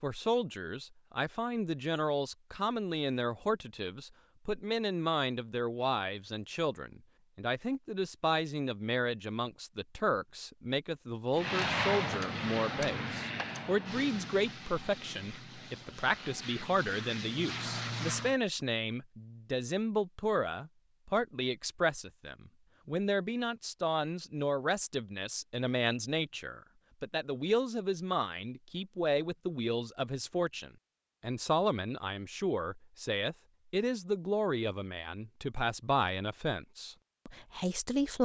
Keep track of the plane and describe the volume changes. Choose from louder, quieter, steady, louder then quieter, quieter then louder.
quieter then louder.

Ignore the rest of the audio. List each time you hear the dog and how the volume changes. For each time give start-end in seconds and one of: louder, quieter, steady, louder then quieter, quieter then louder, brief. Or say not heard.
not heard.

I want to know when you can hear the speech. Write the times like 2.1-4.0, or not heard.
0.0-38.2.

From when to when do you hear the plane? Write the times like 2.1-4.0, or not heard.
11.3-18.4.